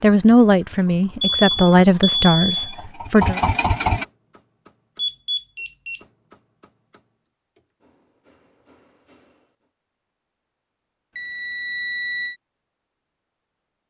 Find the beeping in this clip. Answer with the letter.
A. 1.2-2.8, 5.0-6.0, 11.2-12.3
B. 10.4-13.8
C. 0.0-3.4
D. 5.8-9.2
A.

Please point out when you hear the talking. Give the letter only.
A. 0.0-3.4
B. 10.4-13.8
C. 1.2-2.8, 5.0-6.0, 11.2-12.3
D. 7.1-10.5
A.